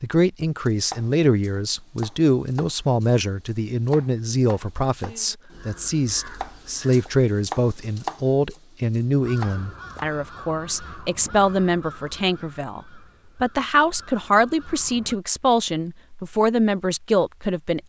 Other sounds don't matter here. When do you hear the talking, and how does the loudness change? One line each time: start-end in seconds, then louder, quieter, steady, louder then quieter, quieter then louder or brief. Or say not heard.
0.0-17.8 steady.